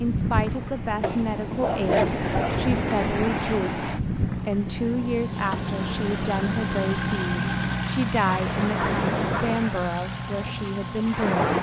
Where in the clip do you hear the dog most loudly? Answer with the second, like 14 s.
2 s.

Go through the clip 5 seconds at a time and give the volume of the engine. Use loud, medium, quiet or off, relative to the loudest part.
medium, loud, medium.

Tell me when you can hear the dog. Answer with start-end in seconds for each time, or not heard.
1.0-2.5, 8.2-9.4.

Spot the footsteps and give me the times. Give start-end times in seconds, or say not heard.
not heard.